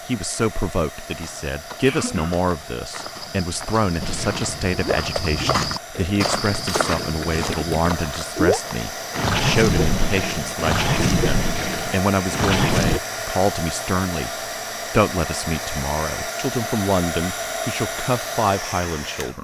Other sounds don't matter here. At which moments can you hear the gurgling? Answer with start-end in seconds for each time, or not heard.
4.0-13.0.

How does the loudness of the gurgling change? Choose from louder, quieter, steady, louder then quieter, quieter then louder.
louder.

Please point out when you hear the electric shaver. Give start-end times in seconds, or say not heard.
not heard.